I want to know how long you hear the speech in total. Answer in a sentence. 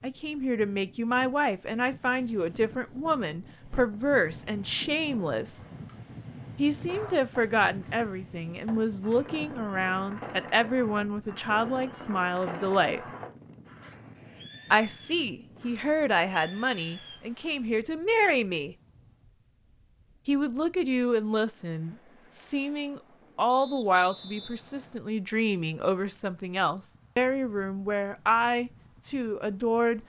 The speech can be heard for 26 seconds in total.